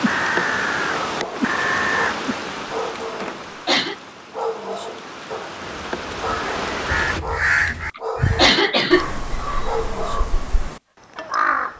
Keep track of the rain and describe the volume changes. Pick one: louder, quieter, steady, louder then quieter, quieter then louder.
quieter then louder.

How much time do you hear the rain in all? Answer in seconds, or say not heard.
7 s.